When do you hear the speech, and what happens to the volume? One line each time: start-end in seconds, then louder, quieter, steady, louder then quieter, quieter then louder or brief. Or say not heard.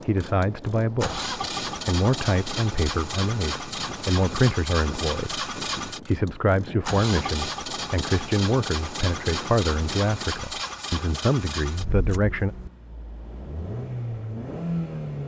0.1-12.5 steady.